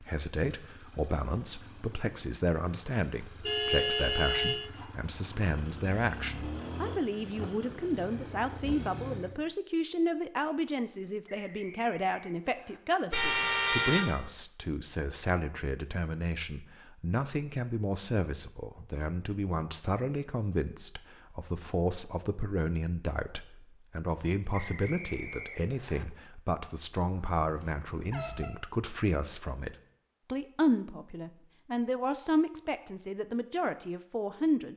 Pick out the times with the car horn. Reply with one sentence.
You can hear the car horn from 3.5 to 4.6 s, from 13.1 to 14.2 s and from 27.4 to 28.5 s.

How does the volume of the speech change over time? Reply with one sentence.
The volume of the speech stays about the same.